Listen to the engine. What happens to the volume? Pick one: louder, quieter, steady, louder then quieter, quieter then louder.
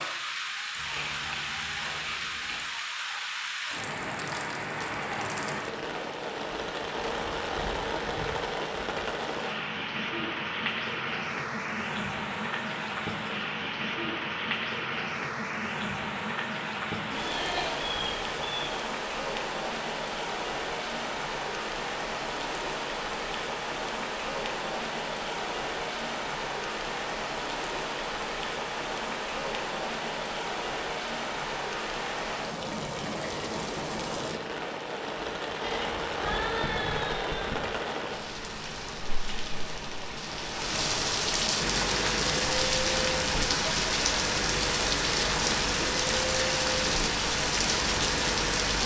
steady.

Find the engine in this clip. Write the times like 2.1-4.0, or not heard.
41.6-48.8.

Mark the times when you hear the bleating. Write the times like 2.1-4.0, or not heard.
0.8-2.6, 17.1-18.8, 35.6-37.6.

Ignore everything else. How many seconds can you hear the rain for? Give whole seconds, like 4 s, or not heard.
49 s.